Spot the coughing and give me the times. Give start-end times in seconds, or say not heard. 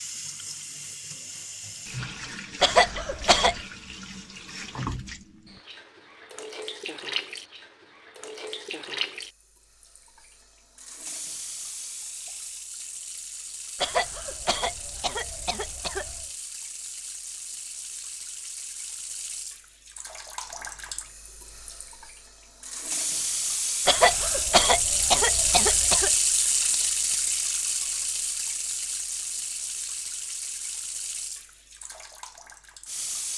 2.6-3.6, 13.8-16.2, 23.9-26.1.